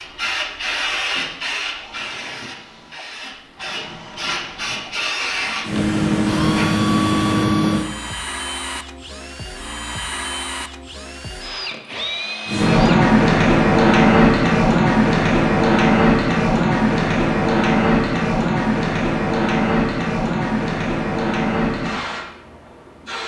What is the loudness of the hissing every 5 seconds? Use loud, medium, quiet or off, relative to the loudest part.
quiet, medium, loud, loud, medium.